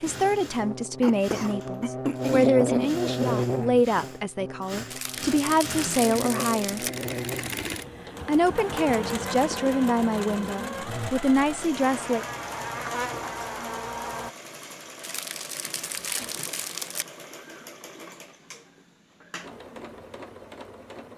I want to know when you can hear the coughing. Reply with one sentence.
You can hear the coughing from 1.0 to 3.0 s and from 16.0 to 16.4 s.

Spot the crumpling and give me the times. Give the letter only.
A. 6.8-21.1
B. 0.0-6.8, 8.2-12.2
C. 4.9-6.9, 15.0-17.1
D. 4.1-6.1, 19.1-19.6
C.